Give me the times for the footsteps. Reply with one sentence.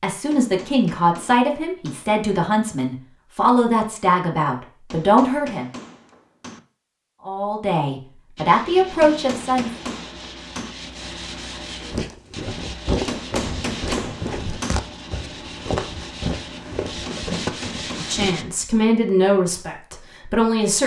The footsteps can be heard from 11.9 to 18.4 s.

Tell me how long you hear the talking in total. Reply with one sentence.
The talking can be heard for 11 seconds in total.